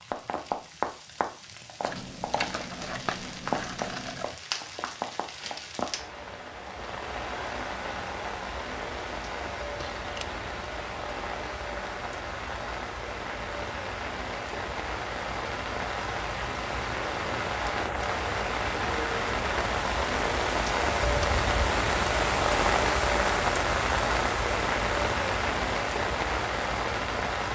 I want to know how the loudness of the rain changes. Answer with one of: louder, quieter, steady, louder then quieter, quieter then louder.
louder.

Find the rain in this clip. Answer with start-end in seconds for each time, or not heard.
0.0-27.5.